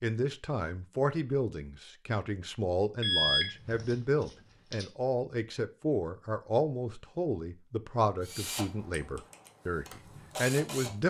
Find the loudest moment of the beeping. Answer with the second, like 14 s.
3 s.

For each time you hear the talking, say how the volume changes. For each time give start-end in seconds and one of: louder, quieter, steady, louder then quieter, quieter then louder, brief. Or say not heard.
0.0-11.0 steady.